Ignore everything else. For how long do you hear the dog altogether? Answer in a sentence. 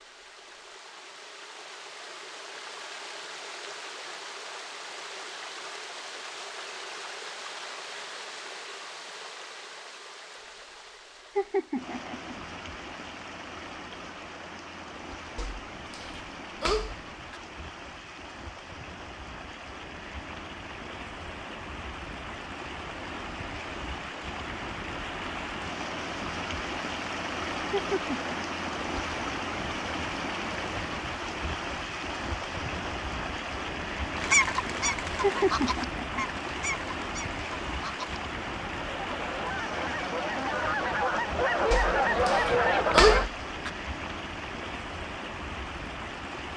You can hear the dog for 4 seconds altogether.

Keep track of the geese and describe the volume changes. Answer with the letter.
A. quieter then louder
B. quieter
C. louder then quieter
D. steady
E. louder
A.